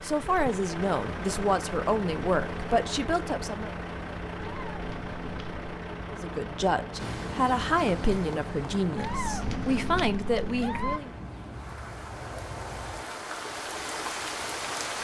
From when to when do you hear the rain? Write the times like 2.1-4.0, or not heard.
7.0-14.9.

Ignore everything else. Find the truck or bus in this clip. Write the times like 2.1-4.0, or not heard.
0.0-13.2.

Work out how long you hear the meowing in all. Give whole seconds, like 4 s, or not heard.
3 s.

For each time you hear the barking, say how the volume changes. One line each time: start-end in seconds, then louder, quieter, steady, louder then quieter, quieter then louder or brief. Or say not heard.
not heard.